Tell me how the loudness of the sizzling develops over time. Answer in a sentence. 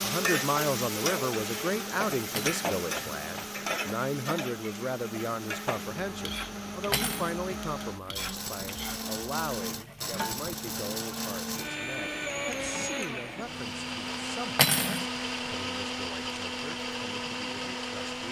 The loudness of the sizzling goes down.